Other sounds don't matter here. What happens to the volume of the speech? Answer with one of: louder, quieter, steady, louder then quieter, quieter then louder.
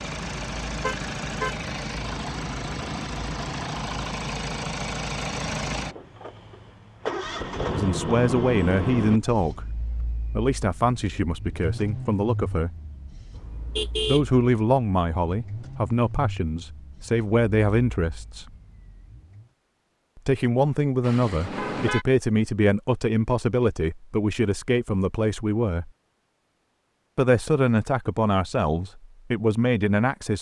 steady.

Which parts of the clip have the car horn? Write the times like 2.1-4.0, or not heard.
0.8-1.7, 13.3-14.3, 21.0-22.1.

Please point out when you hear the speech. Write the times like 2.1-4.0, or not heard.
7.8-12.8, 14.0-18.4, 20.1-25.9, 27.1-30.3.